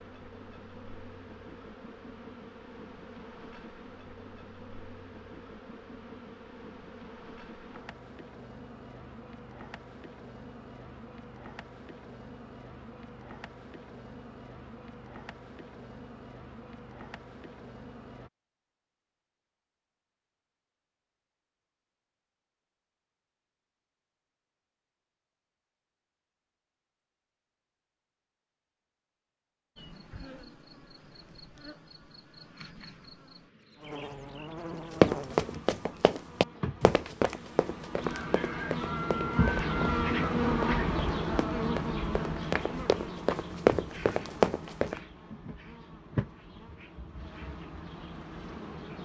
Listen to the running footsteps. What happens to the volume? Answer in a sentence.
The volume of the running footsteps goes down, then up.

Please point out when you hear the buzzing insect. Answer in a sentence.
The buzzing insect can be heard from 0.0 to 18.3 s and from 29.8 to 49.0 s.